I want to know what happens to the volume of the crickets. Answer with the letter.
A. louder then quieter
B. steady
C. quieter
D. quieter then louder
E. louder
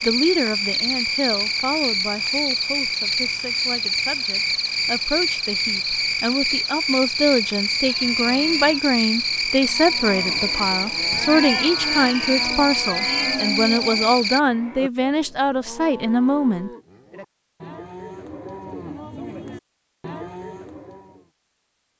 B.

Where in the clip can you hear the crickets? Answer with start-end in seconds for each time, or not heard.
0.0-14.4.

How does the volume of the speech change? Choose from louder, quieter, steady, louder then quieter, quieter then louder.
louder.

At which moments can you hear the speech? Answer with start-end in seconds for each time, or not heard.
0.0-16.7.